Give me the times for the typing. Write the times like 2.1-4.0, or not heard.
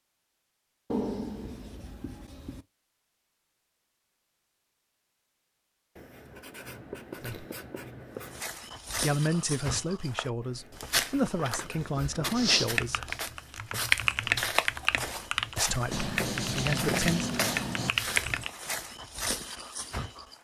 12.8-18.5.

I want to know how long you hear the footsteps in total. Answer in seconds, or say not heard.
12 s.